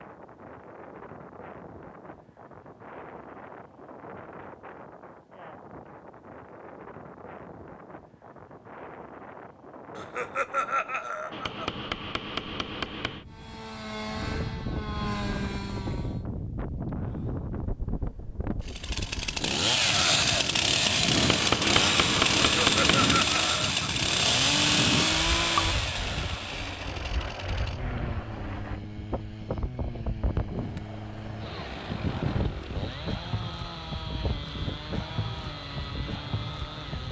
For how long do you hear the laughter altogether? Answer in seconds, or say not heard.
3 s.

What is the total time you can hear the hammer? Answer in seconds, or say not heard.
4 s.